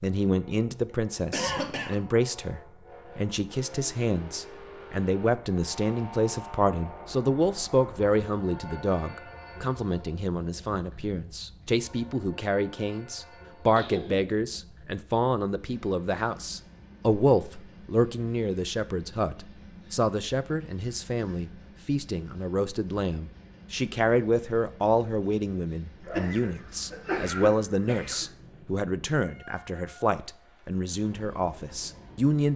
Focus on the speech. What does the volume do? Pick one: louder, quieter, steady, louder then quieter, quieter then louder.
steady.